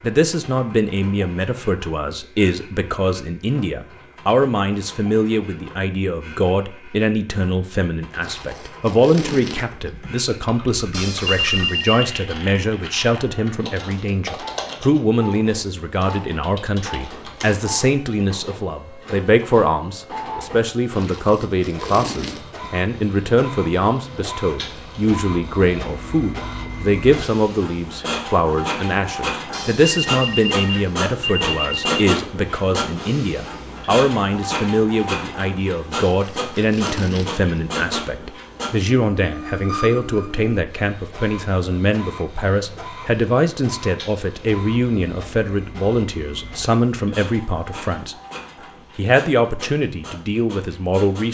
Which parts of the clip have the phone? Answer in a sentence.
The phone can be heard from 10.9 to 12.2 s and from 29.5 to 32.0 s.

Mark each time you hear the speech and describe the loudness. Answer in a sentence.
You can hear the speech from 0.0 to 48.1 s, at a steady volume; and briefly from 49.0 to 51.2 s.